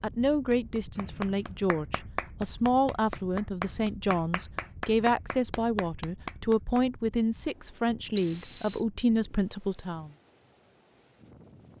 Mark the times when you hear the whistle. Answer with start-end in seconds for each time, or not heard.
0.9-1.6, 8.2-8.8.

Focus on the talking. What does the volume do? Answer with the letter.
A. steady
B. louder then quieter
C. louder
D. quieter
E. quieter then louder
A.